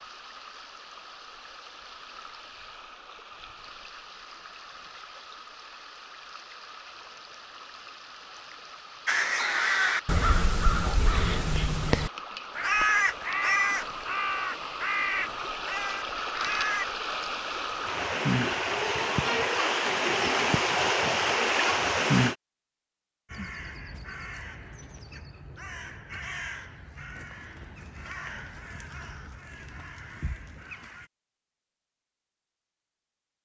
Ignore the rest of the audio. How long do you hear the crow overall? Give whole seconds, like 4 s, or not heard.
16 s.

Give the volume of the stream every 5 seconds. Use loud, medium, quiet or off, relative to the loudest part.
quiet, quiet, quiet, medium, loud, off, off.